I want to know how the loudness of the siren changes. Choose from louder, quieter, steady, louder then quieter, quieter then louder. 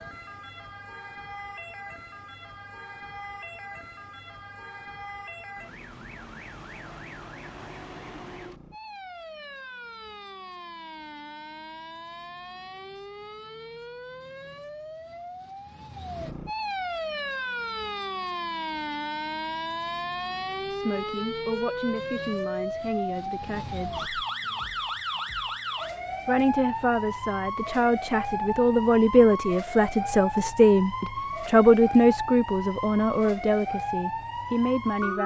louder.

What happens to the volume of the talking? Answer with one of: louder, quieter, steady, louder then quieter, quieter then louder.
louder then quieter.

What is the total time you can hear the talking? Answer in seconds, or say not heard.
12 s.